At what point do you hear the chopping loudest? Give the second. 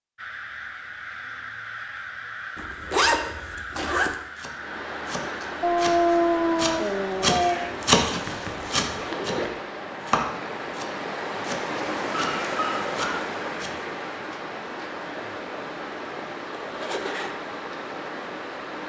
8 s.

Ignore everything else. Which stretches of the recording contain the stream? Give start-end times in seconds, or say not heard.
4.5-18.8.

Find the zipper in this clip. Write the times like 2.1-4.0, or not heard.
2.5-4.2, 8.2-9.6, 16.6-17.4.